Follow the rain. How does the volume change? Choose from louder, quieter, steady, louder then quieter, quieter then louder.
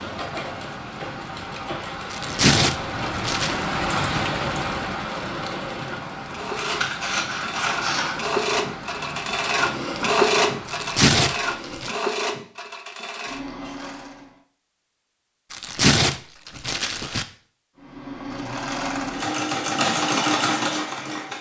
louder then quieter.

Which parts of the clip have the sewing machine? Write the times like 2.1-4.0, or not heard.
0.0-14.4, 17.8-21.3.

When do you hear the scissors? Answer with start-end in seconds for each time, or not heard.
6.5-8.3.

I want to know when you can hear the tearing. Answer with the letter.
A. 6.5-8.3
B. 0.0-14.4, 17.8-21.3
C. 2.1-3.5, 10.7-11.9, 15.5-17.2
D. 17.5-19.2
C.